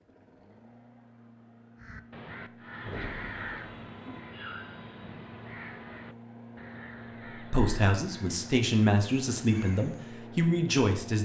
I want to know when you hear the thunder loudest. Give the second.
3 s.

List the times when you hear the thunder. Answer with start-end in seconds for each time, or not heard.
2.8-4.2.